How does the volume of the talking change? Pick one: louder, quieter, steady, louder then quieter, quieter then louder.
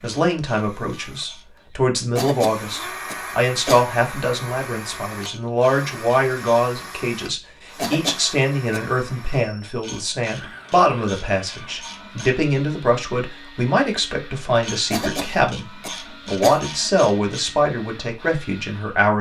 steady.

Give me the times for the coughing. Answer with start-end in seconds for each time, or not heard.
2.1-3.9, 7.8-8.9, 14.9-16.6.